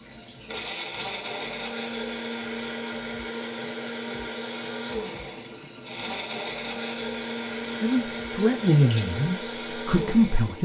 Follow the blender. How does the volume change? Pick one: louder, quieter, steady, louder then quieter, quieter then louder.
steady.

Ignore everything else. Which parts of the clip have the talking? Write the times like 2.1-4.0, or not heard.
7.8-10.6.